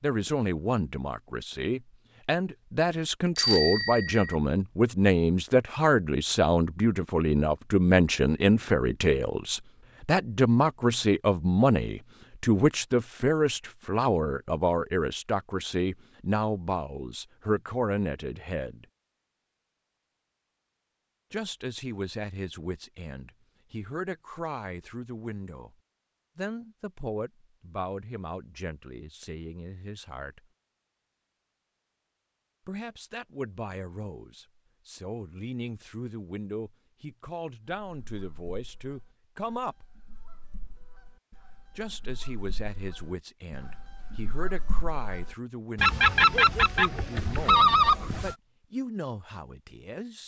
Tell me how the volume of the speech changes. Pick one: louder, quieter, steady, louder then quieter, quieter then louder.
quieter.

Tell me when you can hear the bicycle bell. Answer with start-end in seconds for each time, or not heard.
3.4-4.3.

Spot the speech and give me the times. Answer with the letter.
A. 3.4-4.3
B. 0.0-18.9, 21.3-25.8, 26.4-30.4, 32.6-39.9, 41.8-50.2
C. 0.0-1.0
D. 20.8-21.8
B.